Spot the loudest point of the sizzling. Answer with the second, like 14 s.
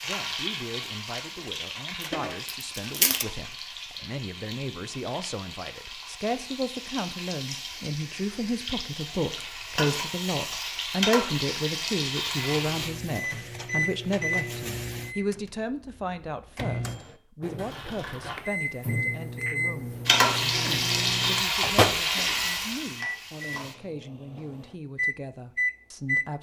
21 s.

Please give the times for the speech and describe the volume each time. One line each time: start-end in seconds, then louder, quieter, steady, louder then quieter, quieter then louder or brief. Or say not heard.
0.0-26.3 louder then quieter.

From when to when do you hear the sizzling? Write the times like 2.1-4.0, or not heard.
0.0-12.9, 20.1-23.8.